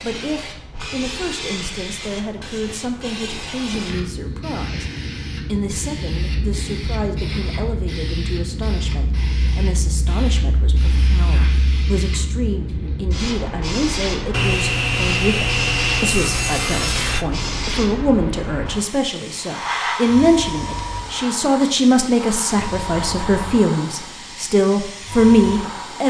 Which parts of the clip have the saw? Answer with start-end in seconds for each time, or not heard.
14.3-17.2.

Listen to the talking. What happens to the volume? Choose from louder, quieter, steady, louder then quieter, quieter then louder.
louder.